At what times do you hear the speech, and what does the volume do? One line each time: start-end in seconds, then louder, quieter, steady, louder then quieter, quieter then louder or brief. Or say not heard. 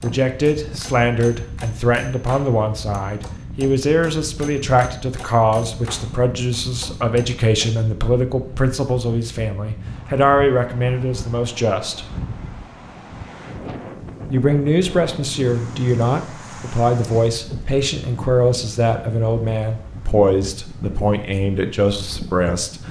0.0-12.1 steady
14.3-22.8 steady.